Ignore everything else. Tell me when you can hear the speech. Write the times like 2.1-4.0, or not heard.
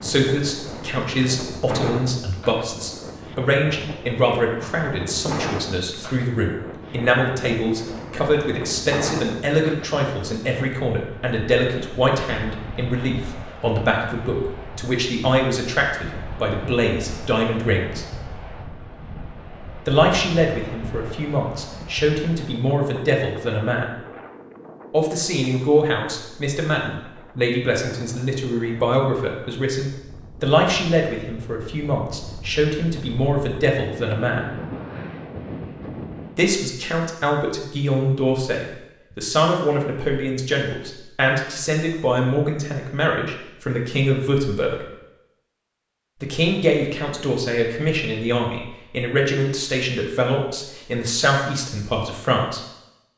0.0-18.1, 19.9-23.9, 24.9-34.5, 36.4-44.8, 46.2-52.6.